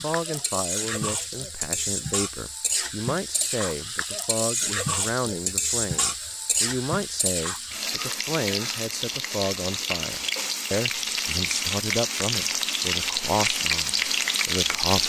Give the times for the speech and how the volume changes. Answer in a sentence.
The speech can be heard from 0.0 to 15.0 s, at a steady volume.